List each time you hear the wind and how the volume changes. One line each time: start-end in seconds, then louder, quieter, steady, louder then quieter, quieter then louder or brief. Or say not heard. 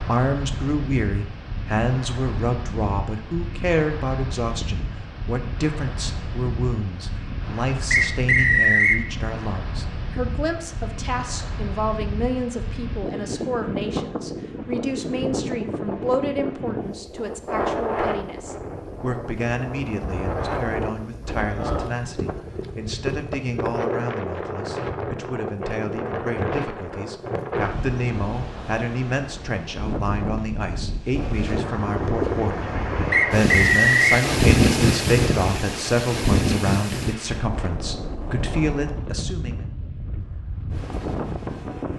0.0-41.9 louder.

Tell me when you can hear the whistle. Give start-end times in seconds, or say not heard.
7.9-9.0, 33.1-34.2.